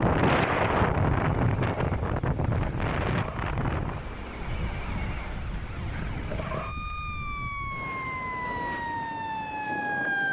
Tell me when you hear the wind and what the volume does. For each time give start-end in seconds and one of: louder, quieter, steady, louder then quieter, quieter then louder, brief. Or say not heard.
0.0-10.2 quieter.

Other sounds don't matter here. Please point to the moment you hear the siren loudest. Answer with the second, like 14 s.
10 s.